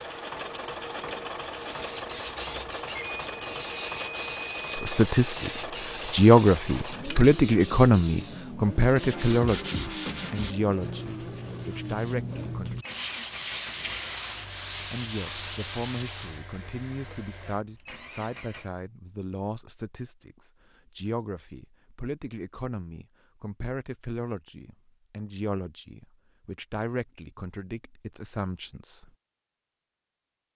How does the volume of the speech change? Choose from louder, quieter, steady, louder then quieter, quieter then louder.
quieter.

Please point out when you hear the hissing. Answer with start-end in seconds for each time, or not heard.
1.5-8.6.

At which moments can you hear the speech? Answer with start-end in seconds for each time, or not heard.
4.8-12.8, 14.9-29.1.